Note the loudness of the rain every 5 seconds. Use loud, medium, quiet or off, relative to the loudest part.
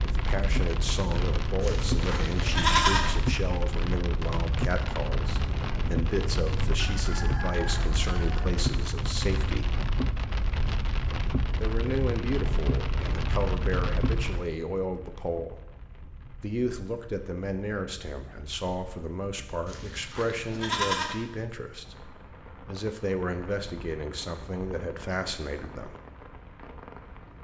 loud, loud, loud, quiet, quiet, quiet.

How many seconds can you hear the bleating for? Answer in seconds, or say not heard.
3 s.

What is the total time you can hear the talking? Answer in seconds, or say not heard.
23 s.